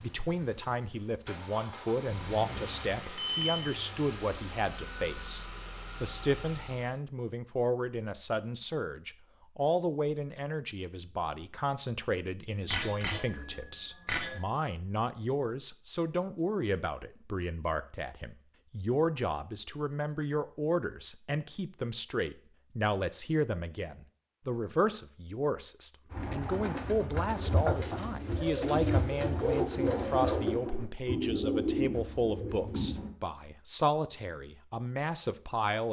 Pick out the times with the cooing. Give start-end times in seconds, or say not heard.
26.1-33.1.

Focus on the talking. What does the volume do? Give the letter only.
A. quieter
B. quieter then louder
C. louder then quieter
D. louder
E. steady
E.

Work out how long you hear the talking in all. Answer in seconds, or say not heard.
36 s.